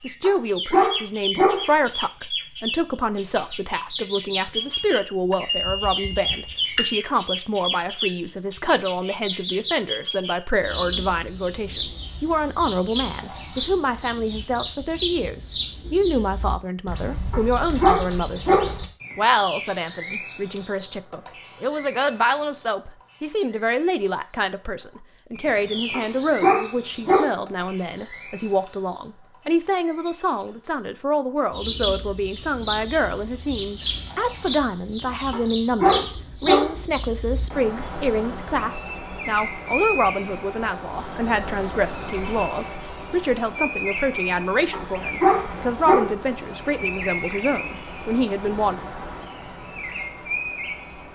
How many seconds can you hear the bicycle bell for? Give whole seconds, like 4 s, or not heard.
2 s.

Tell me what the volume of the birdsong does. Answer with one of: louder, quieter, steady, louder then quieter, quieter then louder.
steady.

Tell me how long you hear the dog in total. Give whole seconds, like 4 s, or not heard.
7 s.